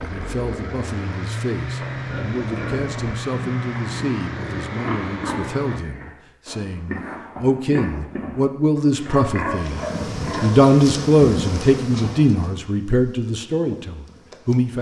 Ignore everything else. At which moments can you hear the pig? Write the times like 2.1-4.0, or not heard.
1.8-10.7.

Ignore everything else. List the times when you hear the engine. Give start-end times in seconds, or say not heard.
0.0-5.8.